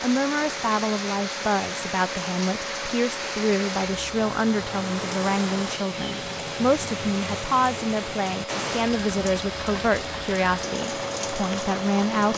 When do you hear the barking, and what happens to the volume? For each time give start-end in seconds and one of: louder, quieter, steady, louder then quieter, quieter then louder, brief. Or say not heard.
not heard.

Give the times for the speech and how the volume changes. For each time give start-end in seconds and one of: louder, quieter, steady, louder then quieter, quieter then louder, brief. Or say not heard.
0.0-12.3 steady.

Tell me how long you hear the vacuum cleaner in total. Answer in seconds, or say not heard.
12 s.